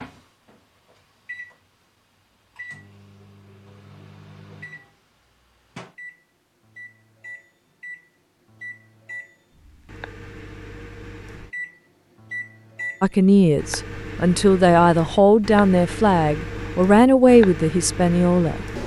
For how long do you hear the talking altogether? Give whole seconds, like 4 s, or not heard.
6 s.